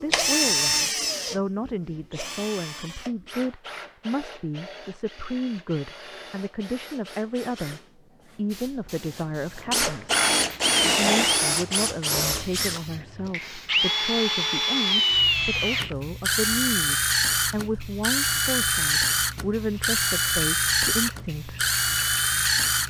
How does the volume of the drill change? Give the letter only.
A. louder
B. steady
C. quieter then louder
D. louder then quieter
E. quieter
C.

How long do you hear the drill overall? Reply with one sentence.
The drill can be heard for 23 seconds in total.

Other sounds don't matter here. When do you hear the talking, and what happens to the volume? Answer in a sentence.
The talking can be heard from 0.0 to 10.2 s, at a steady volume; and from 10.9 to 21.6 s, at a steady volume.